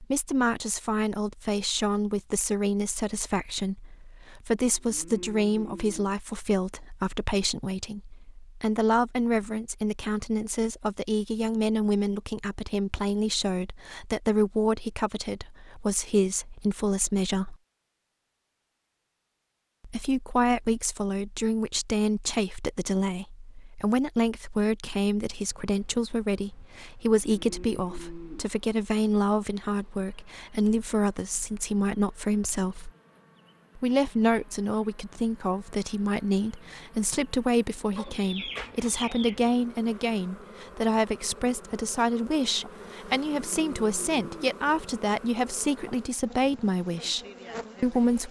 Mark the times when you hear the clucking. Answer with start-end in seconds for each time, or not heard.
38.0-39.4.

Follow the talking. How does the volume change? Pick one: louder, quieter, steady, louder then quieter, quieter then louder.
steady.